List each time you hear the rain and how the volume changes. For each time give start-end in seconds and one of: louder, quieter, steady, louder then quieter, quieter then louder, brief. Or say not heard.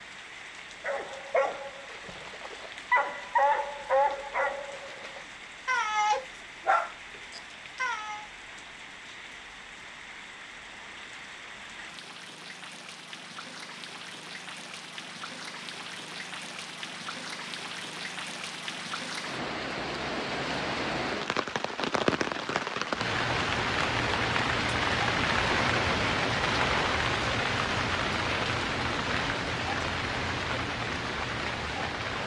0.0-32.2 louder.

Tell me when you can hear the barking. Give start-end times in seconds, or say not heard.
0.8-8.2.